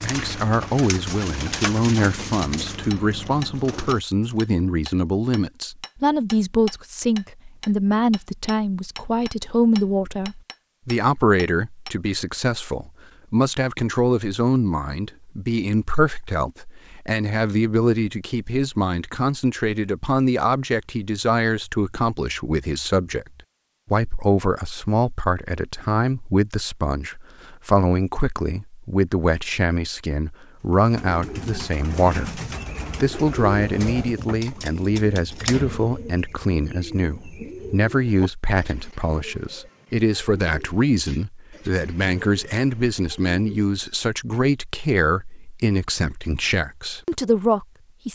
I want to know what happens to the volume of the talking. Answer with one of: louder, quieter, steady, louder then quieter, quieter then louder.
steady.